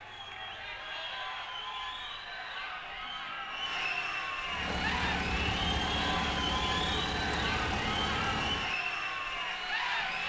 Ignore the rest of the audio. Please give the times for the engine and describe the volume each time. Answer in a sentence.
The engine can be heard from 4.5 to 8.8 s, at a steady volume.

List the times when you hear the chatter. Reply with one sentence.
The chatter can be heard from 0.0 to 10.2 s.